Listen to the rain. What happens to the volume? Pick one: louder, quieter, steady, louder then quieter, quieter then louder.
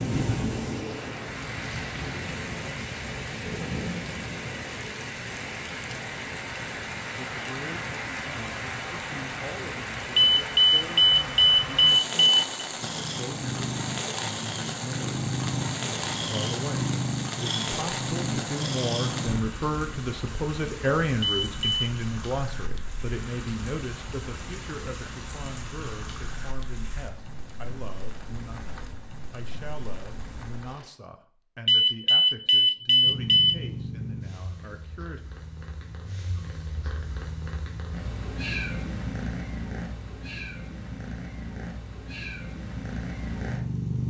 quieter.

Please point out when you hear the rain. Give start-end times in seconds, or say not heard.
0.0-30.9.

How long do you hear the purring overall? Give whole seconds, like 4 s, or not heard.
18 s.